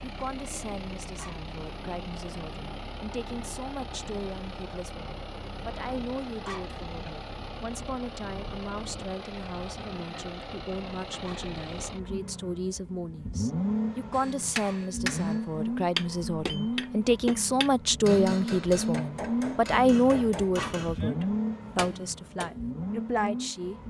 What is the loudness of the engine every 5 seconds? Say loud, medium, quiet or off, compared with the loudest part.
medium, medium, loud, loud, loud.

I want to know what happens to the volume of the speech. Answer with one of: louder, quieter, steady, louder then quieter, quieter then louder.
louder.